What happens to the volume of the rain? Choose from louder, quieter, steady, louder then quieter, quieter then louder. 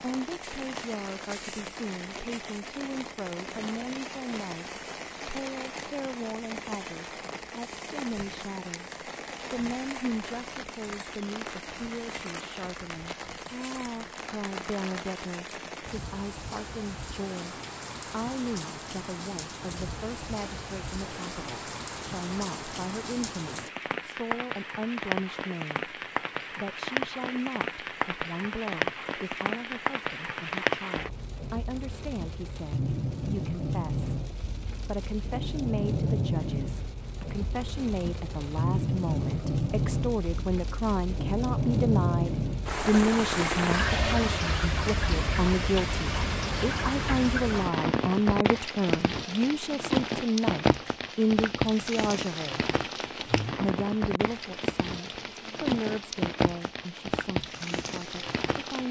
louder.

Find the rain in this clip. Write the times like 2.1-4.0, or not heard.
0.0-58.8.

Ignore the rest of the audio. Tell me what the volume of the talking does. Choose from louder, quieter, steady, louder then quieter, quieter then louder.
louder.